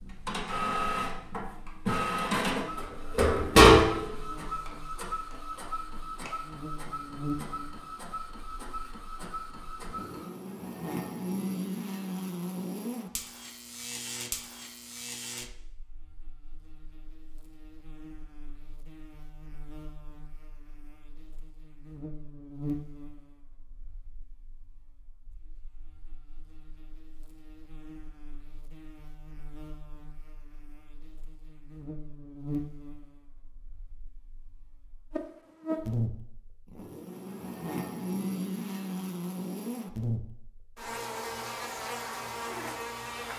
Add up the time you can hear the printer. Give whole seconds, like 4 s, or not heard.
10 s.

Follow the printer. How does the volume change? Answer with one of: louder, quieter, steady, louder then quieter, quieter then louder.
louder then quieter.